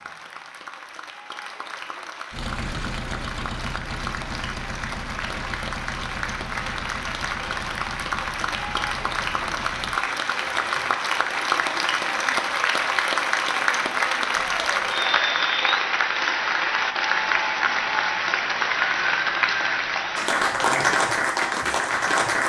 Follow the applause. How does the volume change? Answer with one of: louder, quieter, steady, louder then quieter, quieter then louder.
louder.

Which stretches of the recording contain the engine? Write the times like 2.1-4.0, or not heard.
2.3-12.4.